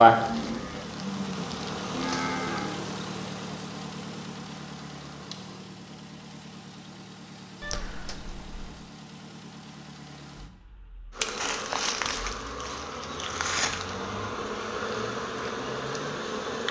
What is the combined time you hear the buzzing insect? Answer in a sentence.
The buzzing insect can be heard for 11 seconds in total.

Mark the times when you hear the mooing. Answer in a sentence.
You can hear the mooing from 0.0 to 3.0 s.